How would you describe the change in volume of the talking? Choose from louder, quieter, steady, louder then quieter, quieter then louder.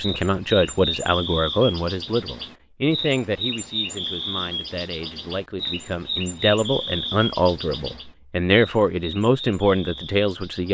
quieter then louder.